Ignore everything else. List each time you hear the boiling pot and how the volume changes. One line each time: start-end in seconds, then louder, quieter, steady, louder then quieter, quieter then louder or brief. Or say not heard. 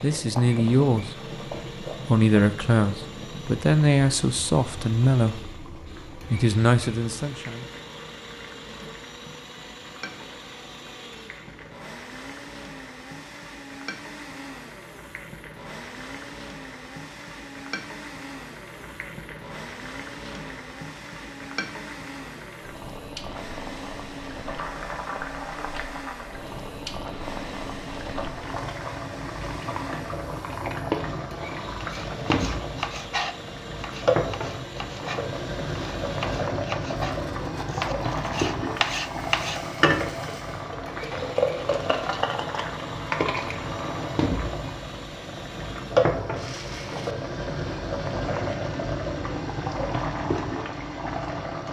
0.0-51.6 louder.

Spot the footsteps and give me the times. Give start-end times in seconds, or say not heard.
not heard.